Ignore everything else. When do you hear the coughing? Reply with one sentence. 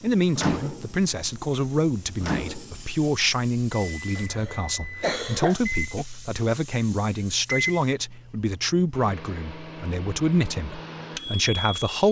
The coughing can be heard from 4.2 to 6.0 s.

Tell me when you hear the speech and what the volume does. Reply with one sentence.
The speech can be heard from 0.0 to 12.0 s, at a steady volume.